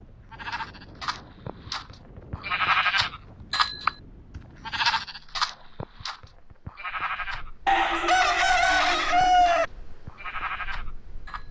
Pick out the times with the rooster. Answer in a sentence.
You can hear the rooster from 7.7 to 9.7 s.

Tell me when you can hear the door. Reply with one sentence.
You can't hear the door here.